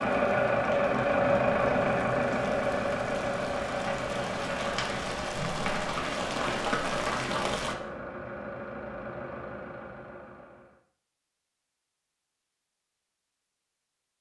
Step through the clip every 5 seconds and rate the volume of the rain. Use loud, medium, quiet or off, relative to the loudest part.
medium, loud, off.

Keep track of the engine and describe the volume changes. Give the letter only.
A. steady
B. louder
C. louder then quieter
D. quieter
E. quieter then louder
D.